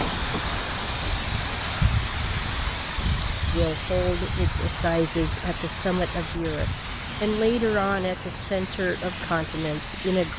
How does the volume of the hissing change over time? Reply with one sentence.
The loudness of the hissing goes down.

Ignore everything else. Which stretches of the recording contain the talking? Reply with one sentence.
You can hear the talking from 3.5 to 10.3 s.